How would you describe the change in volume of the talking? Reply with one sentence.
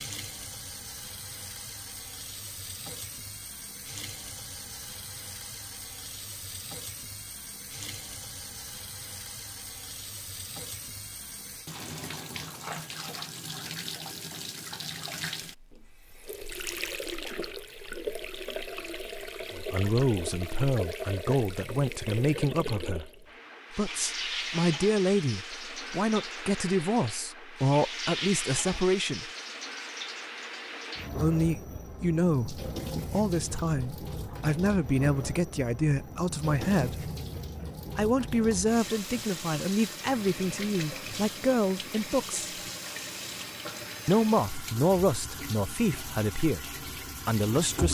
The loudness of the talking stays about the same.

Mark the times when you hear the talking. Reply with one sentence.
You can hear the talking from 19.5 to 23.1 s, from 23.7 to 29.3 s, from 31.2 to 37.1 s, from 38.0 to 42.5 s and from 44.0 to 47.8 s.